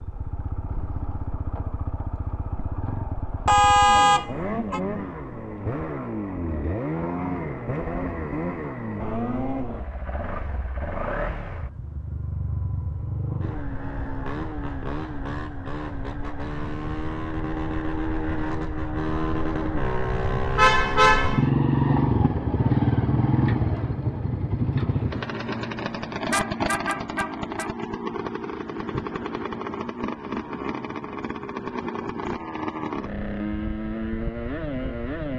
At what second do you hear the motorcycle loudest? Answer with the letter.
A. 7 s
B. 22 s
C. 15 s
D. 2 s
B.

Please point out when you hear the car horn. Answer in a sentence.
You can hear the car horn from 3.5 to 4.8 s, from 20.6 to 21.4 s and from 24.9 to 27.7 s.